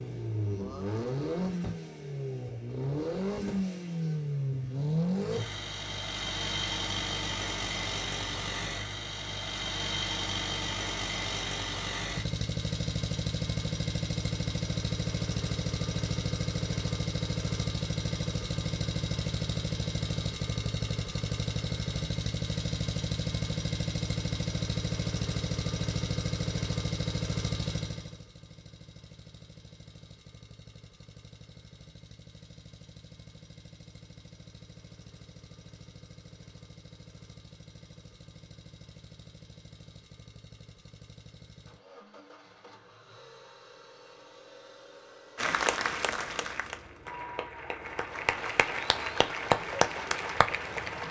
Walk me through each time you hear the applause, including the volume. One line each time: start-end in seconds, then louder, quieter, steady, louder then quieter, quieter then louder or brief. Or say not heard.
45.4-51.0 quieter then louder.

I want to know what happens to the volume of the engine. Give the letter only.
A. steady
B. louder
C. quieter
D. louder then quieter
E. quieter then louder
C.